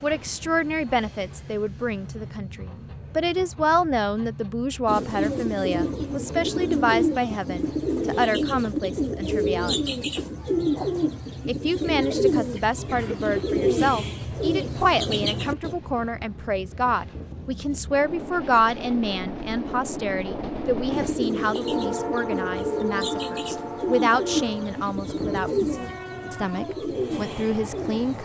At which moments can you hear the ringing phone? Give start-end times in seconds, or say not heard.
not heard.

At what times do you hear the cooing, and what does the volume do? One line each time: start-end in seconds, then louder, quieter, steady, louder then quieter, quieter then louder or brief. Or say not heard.
4.8-15.8 steady
20.9-28.2 steady.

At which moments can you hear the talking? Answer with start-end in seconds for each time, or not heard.
0.0-9.8, 11.4-28.2.